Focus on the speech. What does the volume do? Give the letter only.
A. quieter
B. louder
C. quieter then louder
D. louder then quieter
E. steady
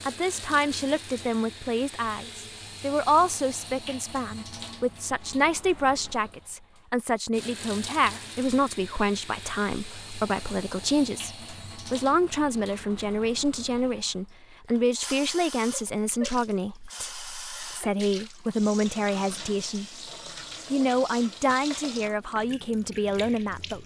E.